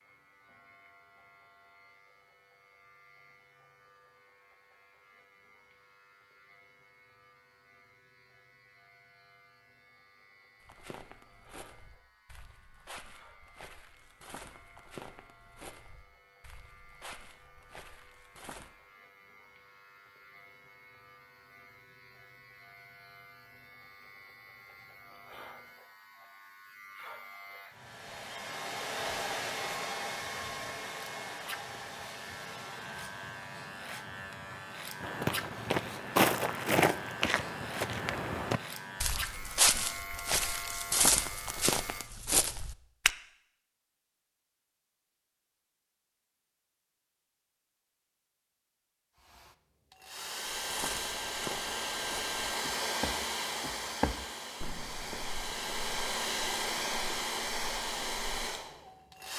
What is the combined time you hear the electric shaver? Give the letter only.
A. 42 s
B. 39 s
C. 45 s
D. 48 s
A.